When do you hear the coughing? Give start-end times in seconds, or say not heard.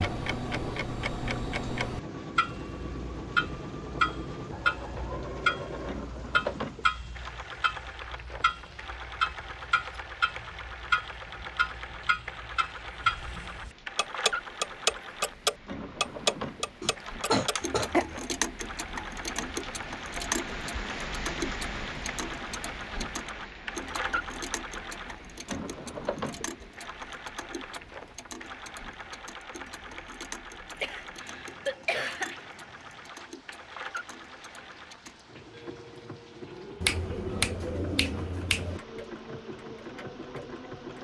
16.8-18.1, 30.8-32.5.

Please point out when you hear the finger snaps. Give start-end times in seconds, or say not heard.
36.8-38.8.